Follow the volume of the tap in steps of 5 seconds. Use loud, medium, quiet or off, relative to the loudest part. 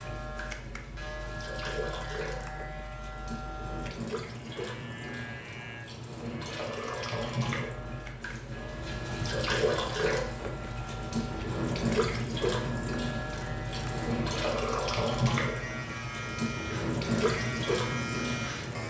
medium, loud, loud, loud.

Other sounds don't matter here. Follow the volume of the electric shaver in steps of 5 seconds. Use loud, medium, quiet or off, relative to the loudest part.
loud, medium, loud, loud.